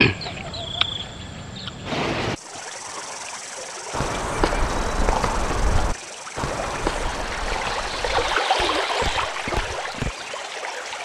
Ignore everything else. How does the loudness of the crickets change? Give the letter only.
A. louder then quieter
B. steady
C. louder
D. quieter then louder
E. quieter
E.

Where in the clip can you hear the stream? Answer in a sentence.
The stream can be heard from 2.3 to 11.0 s.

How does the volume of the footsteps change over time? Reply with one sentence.
The loudness of the footsteps goes down.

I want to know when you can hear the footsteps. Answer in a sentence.
The footsteps can be heard from 3.9 to 10.1 s.